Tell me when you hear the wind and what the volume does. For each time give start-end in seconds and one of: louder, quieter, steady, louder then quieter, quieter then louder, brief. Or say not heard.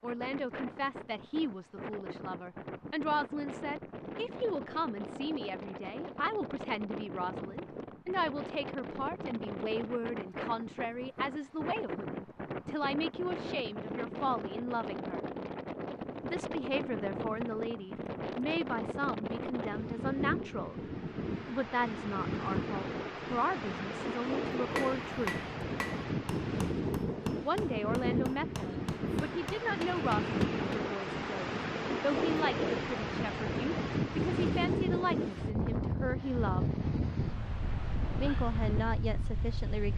0.0-39.9 louder.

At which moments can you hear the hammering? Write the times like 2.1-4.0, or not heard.
24.8-30.9.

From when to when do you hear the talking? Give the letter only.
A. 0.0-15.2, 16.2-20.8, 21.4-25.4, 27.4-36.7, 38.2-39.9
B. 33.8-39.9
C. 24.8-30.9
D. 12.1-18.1
A.